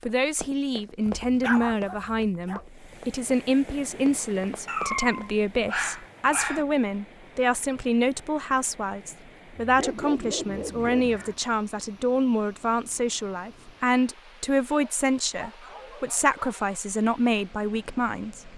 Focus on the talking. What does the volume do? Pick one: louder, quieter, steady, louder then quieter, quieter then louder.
steady.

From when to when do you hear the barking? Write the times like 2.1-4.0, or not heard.
1.1-2.6, 4.7-6.7, 9.6-11.4, 14.7-16.8.